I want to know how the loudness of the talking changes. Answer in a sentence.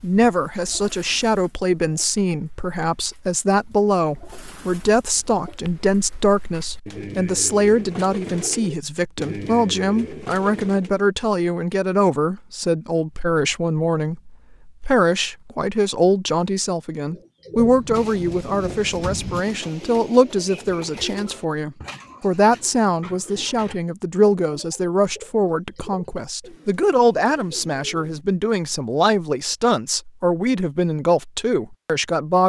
The volume of the talking stays about the same.